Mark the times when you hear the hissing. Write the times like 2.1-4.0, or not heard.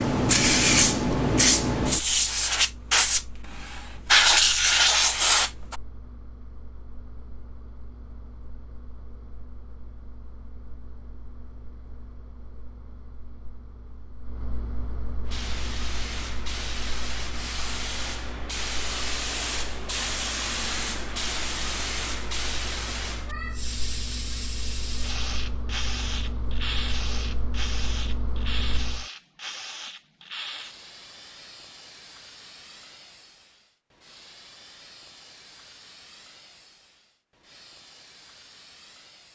0.0-5.8, 15.2-39.3.